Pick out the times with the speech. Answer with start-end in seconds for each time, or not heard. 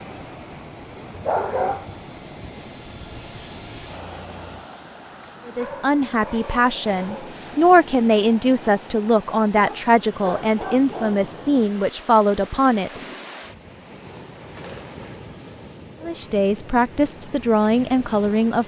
5.5-13.0, 16.0-18.6.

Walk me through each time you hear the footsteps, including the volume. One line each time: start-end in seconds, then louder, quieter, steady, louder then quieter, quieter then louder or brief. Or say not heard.
not heard.